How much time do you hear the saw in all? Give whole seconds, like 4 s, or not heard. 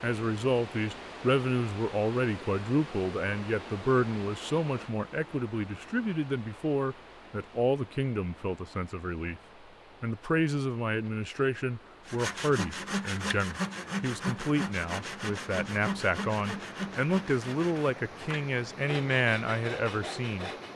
9 s.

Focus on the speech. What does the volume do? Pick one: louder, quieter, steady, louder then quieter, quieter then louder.
steady.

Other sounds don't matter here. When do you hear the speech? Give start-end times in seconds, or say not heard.
0.0-9.4, 10.0-20.5.